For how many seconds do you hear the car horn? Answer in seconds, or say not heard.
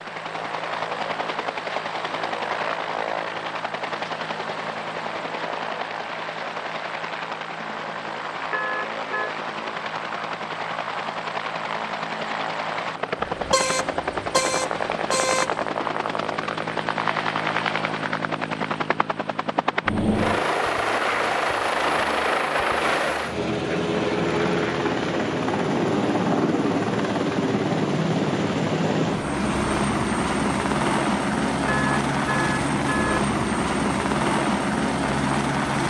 5 s.